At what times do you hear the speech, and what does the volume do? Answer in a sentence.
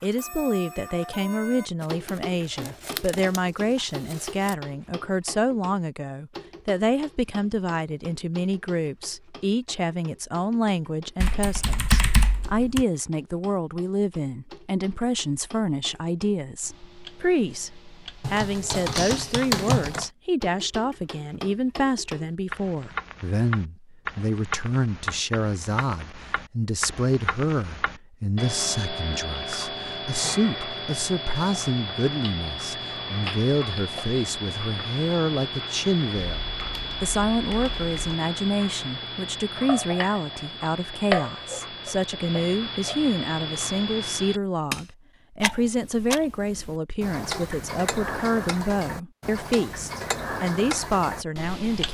You can hear the speech from 0.0 to 51.8 s, at a steady volume.